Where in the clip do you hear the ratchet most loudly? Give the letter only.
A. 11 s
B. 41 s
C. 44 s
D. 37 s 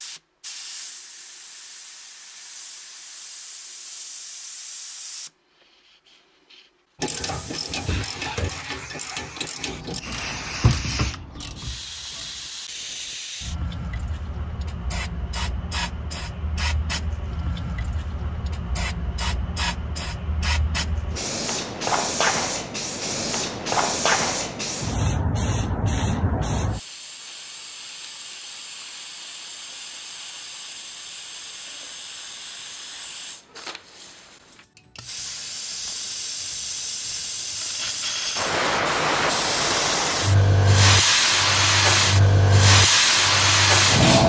A.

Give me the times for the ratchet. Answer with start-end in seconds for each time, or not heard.
7.0-12.5.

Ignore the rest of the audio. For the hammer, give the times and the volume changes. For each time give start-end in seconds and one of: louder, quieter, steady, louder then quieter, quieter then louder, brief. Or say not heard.
not heard.